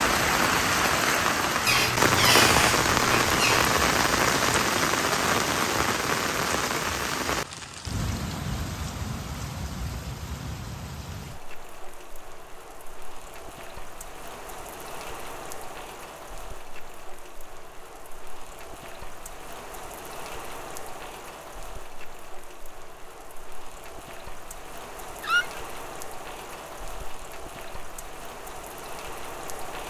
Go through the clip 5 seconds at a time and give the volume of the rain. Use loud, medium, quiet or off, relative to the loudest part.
loud, medium, quiet, quiet, quiet, quiet.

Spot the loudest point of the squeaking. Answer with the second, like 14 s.
2 s.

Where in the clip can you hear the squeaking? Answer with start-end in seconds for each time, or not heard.
1.6-3.8, 25.2-25.6.